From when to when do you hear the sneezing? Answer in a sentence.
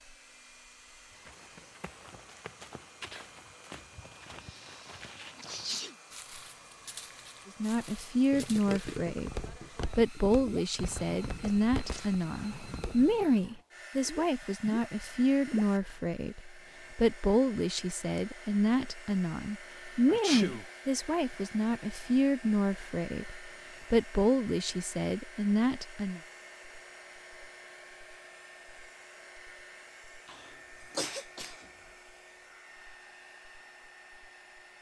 The sneezing can be heard from 4.4 to 6.0 s, from 20.1 to 20.6 s and from 30.2 to 31.6 s.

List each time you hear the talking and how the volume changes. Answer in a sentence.
You can hear the talking from 7.5 to 26.2 s, at a steady volume.